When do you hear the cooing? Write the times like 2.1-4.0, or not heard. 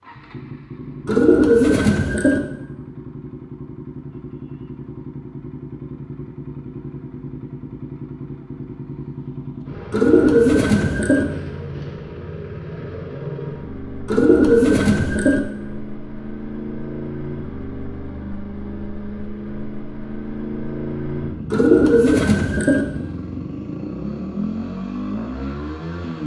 1.1-2.4, 9.9-11.2, 14.1-15.4, 21.5-22.9.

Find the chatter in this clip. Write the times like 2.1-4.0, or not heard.
not heard.